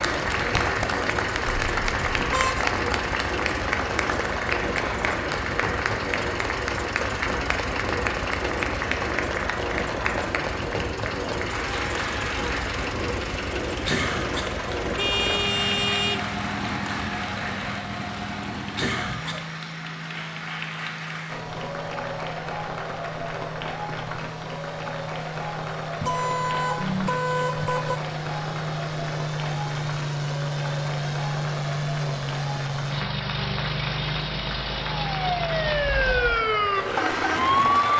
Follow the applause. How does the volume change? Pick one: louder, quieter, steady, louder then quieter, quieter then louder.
quieter.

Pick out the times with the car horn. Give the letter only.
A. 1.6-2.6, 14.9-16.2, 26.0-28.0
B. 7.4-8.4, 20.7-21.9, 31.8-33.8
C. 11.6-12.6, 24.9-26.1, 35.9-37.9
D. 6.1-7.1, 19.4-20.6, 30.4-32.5
A.